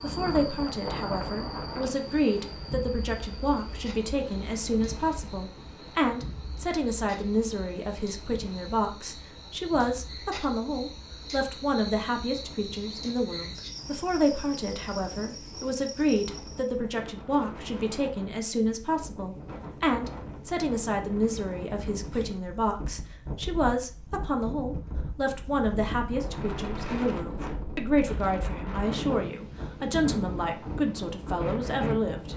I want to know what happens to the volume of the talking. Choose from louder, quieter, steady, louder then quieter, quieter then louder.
steady.